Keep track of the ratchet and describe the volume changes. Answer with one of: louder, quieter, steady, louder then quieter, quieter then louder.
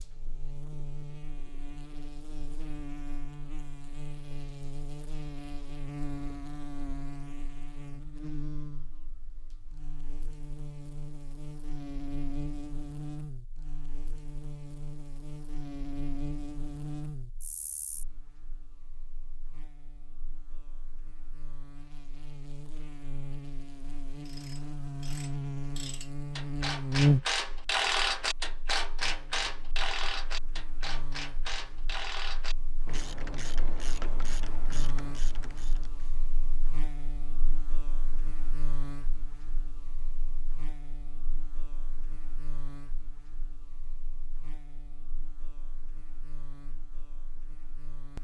louder then quieter.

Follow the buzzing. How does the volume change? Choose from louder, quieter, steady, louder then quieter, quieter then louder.
louder then quieter.